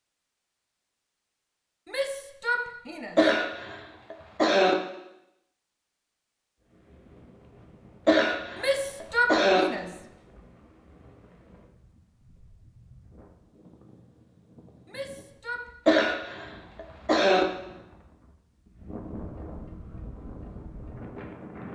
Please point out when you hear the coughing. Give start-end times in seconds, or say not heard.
3.1-4.8, 8.1-9.7, 15.8-17.4.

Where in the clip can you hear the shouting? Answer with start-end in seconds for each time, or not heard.
1.9-3.2, 8.6-9.9, 14.8-15.7.